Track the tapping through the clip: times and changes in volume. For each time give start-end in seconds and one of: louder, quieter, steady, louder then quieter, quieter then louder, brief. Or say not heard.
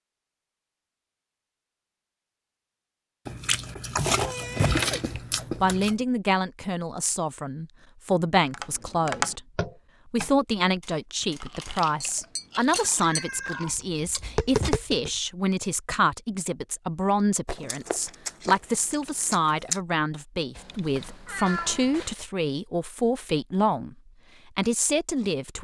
8.5-15.1 quieter then louder.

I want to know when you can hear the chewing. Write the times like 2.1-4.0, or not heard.
3.2-6.0, 11.2-13.7, 17.4-19.8.